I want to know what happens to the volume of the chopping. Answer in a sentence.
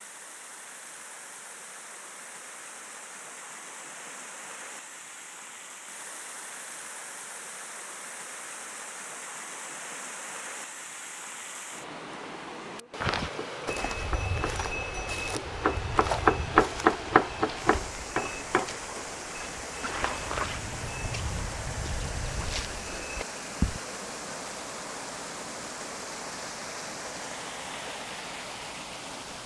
The volume of the chopping goes up, then down.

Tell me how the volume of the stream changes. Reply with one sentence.
The loudness of the stream goes up.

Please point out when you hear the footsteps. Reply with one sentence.
The footsteps can be heard from 13.0 to 23.8 s.